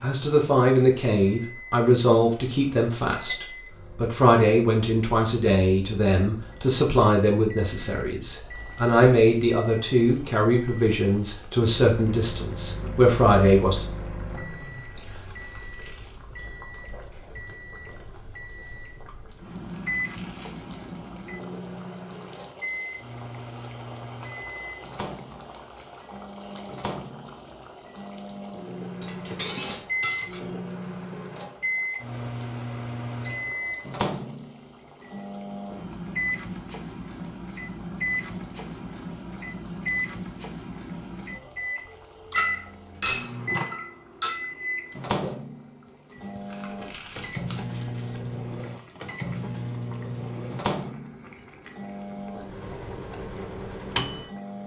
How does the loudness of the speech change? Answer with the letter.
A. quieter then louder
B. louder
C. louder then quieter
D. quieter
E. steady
E.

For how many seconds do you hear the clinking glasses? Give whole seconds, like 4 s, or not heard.
4 s.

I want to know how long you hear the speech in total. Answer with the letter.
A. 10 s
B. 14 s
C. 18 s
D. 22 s
B.